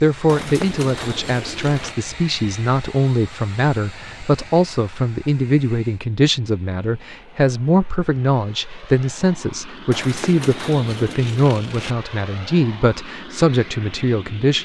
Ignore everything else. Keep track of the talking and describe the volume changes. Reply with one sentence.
The volume of the talking stays about the same.